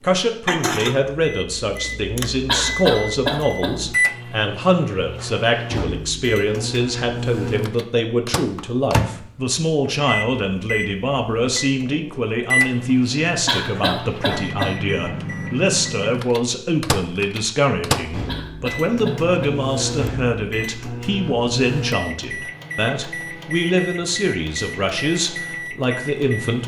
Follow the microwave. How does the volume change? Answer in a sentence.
The loudness of the microwave stays about the same.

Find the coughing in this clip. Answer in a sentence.
You can hear the coughing from 2.5 to 3.8 s, from 13.4 to 14.8 s and from 18.2 to 19.6 s.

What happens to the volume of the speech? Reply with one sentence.
The volume of the speech stays about the same.